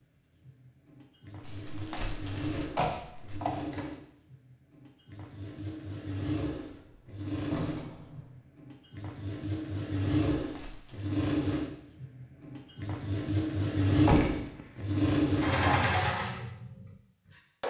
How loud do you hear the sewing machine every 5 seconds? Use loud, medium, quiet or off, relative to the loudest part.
quiet, medium, loud, loud.